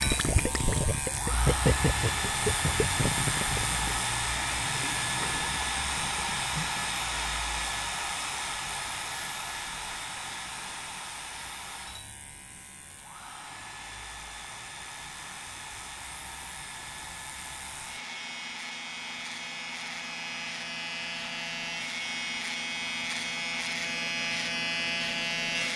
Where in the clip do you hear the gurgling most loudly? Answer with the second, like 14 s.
2 s.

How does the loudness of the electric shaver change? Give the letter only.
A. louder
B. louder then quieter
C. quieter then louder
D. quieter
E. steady
C.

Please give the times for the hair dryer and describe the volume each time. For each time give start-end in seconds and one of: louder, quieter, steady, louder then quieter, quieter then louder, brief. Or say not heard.
0.0-25.7 quieter.